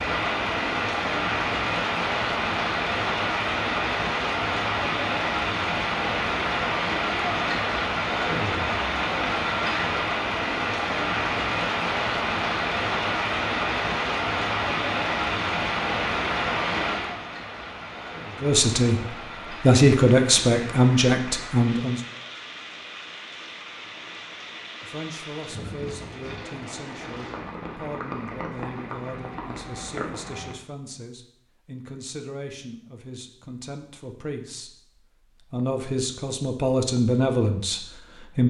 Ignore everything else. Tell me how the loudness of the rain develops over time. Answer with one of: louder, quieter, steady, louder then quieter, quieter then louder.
quieter.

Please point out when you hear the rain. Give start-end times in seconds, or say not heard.
0.0-30.6.